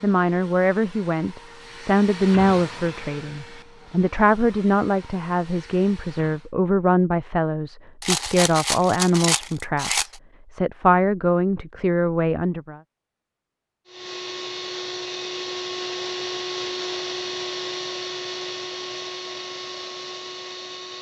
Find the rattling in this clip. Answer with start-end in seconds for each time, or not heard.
8.0-10.2.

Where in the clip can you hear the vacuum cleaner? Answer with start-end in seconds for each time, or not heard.
0.0-6.5, 13.8-20.9.